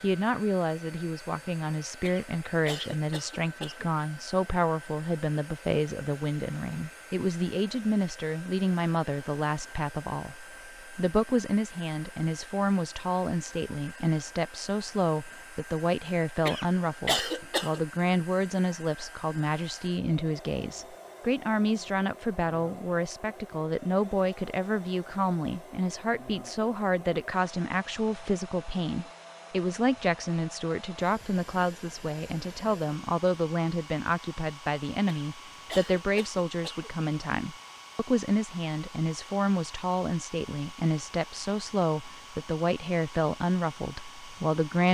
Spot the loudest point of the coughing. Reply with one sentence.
The volume of the coughing peaks at 17 seconds.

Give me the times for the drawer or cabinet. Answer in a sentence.
You can't hear the drawer or cabinet here.